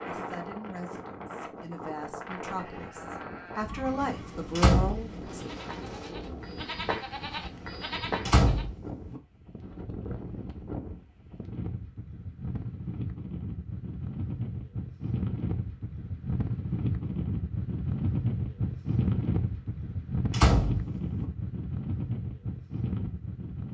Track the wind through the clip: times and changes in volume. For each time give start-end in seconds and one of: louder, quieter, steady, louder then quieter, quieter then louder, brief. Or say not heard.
0.0-23.7 louder.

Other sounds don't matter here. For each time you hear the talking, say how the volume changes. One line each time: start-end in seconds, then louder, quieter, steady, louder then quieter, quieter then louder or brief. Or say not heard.
0.0-5.3 louder.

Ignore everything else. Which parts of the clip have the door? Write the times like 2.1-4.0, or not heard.
4.5-5.5, 8.2-9.2, 20.3-21.2.